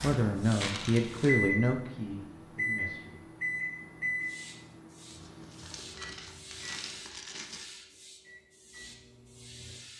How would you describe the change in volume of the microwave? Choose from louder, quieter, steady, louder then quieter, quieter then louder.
quieter.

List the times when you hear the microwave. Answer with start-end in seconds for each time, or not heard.
0.0-9.8.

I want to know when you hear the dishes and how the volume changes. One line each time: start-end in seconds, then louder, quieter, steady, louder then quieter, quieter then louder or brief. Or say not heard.
not heard.